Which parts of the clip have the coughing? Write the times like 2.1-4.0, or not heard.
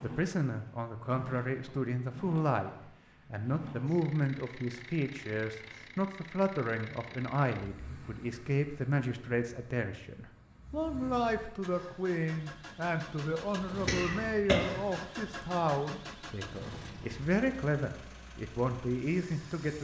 13.8-15.0.